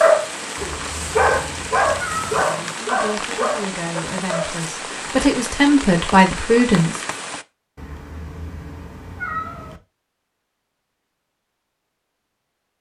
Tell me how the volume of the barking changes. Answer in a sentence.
The volume of the barking goes up, then down.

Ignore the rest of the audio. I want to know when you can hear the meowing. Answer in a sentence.
The meowing can be heard from 0.6 to 2.5 s and from 7.8 to 9.8 s.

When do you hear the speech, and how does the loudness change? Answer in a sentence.
You can hear the speech from 2.8 to 7.0 s, getting louder.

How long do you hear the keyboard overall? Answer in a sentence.
You can't hear the keyboard here.